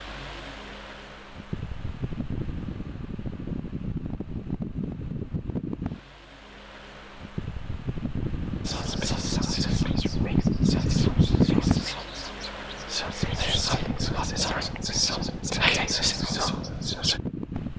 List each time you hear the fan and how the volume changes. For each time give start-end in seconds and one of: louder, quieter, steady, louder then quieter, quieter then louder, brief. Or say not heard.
0.0-17.7 louder then quieter.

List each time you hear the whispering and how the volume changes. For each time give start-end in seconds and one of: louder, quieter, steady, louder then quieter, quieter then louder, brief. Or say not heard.
8.7-17.2 louder.